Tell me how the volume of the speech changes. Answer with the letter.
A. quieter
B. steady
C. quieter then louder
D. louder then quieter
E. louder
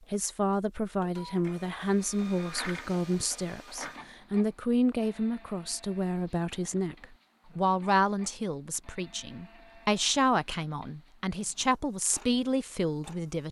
B.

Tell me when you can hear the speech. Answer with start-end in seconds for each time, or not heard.
0.1-13.4.